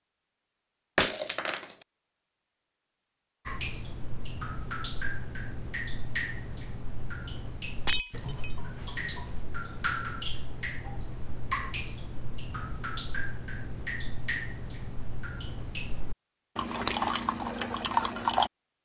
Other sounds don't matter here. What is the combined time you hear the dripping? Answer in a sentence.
The dripping can be heard for 15 seconds in total.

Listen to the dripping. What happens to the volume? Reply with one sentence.
The volume of the dripping goes up.